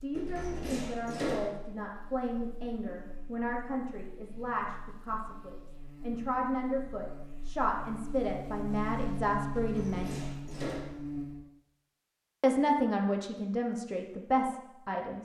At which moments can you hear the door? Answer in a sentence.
The door can be heard from 0.1 to 1.6 s and from 9.6 to 10.9 s.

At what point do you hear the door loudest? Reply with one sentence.
The loudest moment of the door is at 1 second.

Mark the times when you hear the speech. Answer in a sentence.
The speech can be heard from 0.0 to 10.1 s and from 12.4 to 15.1 s.